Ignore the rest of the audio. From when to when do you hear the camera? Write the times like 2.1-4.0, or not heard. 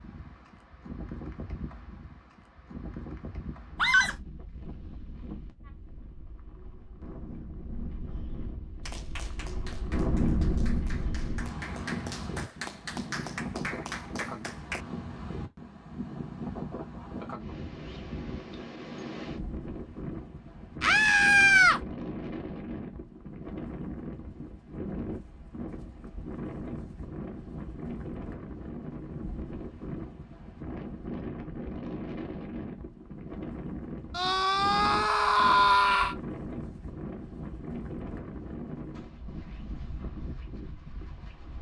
not heard.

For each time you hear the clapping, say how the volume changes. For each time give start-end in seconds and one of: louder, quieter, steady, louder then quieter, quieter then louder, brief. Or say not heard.
8.8-14.8 louder.